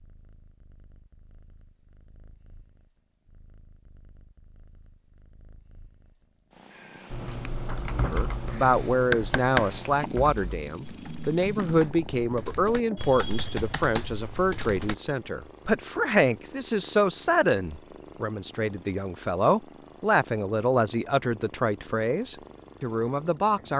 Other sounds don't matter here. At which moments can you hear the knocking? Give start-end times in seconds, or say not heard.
9.1-9.7.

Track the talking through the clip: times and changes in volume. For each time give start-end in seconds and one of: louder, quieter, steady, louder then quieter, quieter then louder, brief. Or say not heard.
8.0-23.7 steady.